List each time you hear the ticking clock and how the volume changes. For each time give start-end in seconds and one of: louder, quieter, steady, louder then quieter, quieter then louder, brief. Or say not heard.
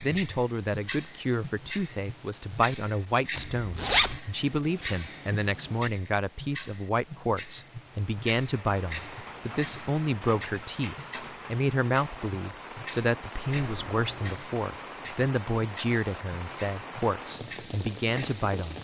0.0-18.4 quieter.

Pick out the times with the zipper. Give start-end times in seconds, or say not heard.
3.4-4.2, 13.5-14.3.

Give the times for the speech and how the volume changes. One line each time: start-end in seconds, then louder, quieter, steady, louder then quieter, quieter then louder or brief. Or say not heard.
0.0-18.7 steady.